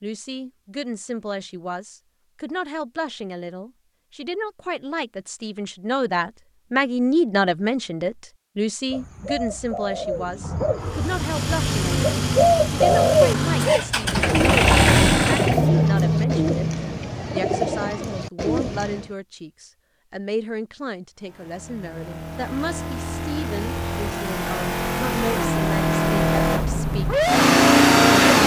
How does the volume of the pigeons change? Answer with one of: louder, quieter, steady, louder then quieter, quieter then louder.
louder then quieter.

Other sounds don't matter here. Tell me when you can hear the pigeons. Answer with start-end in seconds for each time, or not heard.
8.9-19.1.